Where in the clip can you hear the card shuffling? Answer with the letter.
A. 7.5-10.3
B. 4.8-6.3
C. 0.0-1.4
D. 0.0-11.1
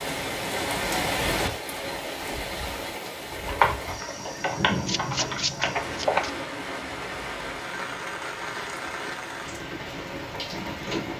B.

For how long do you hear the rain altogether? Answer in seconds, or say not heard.
11 s.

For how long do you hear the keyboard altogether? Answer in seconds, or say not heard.
3 s.